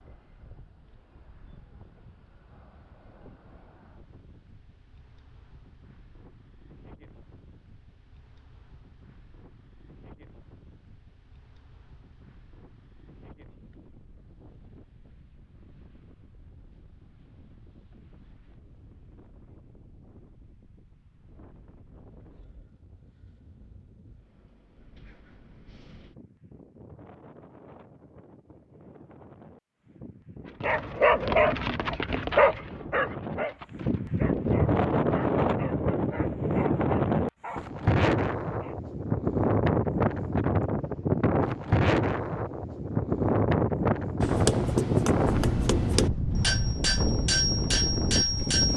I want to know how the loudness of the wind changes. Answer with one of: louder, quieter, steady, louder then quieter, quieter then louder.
louder.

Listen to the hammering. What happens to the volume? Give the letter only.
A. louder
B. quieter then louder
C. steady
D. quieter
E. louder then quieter
C.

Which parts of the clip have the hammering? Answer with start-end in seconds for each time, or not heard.
44.2-48.7.